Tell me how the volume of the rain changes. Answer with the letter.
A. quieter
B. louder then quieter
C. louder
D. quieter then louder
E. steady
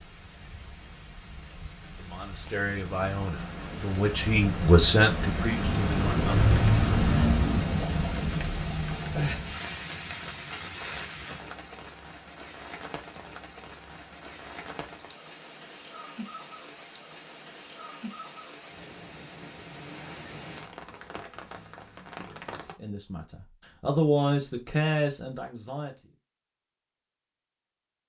B.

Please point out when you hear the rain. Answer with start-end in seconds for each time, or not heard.
0.0-22.8.